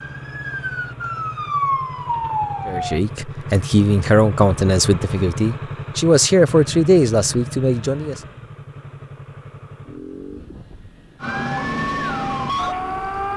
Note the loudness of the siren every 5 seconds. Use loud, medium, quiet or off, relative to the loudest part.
loud, off, loud.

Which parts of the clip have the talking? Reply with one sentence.
You can hear the talking from 2.6 to 8.2 s.